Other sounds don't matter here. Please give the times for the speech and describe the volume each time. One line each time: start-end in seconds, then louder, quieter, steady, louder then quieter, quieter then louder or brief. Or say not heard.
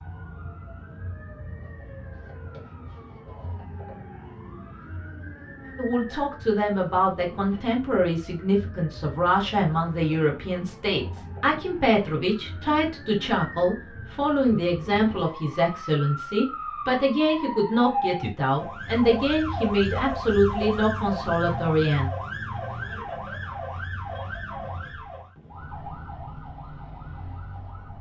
5.8-22.1 steady.